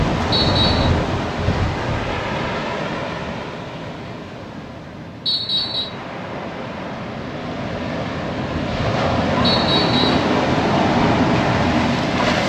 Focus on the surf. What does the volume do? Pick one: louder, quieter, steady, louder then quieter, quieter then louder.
quieter then louder.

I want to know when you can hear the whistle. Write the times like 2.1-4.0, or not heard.
0.3-0.9, 5.2-5.9, 9.4-10.2.